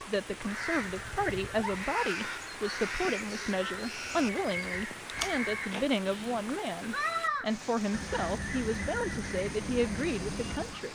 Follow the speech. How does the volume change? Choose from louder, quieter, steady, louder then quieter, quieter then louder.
steady.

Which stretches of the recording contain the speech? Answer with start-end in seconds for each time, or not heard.
0.0-10.8.